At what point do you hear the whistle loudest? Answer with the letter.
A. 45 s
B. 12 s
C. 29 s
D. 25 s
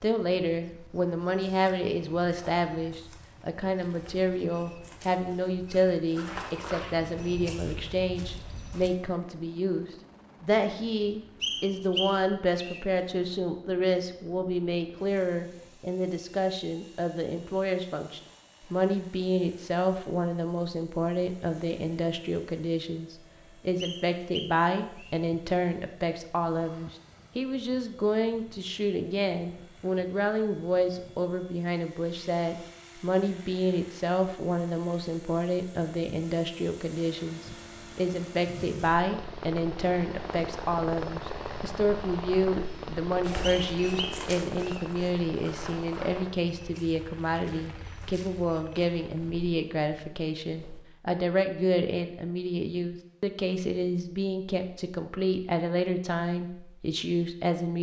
B.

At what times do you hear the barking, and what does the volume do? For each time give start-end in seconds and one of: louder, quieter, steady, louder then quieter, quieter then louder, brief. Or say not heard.
not heard.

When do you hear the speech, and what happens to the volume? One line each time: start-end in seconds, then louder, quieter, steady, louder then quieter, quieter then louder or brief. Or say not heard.
0.0-57.7 steady.